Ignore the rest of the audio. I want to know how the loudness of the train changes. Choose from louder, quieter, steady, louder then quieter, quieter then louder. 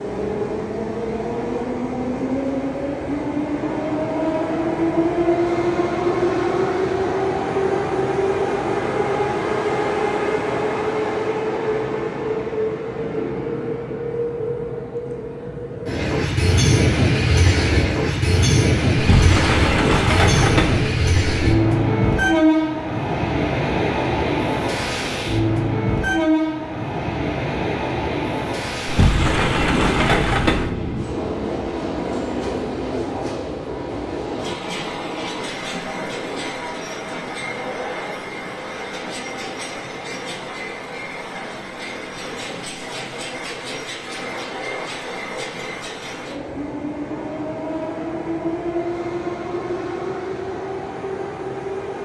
quieter.